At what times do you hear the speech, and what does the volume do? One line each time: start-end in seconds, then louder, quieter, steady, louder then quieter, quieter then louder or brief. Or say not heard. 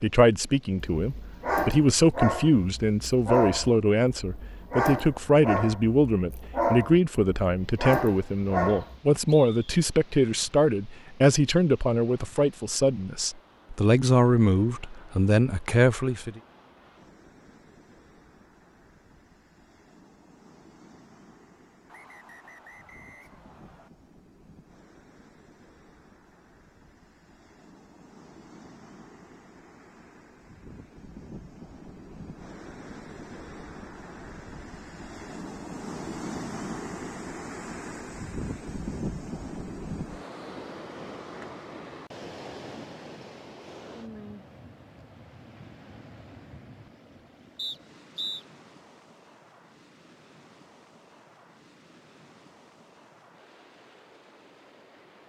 0.0-16.4 steady.